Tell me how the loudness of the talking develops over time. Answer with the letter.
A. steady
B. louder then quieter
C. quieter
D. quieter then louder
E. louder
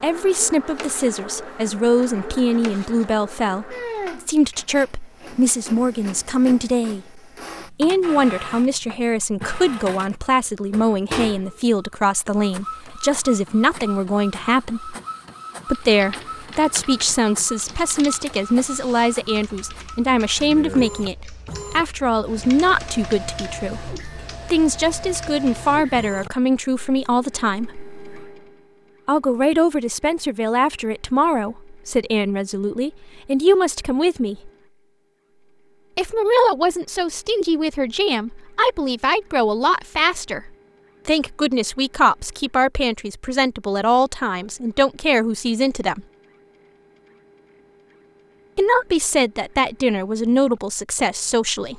A.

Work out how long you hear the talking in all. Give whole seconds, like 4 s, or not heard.
46 s.